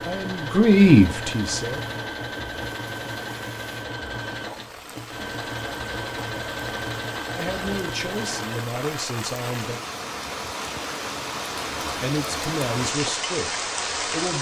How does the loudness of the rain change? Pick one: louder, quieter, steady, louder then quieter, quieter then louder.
louder.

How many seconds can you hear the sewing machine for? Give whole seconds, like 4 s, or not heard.
9 s.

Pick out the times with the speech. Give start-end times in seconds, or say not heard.
0.0-1.8, 7.3-9.8, 12.0-14.3.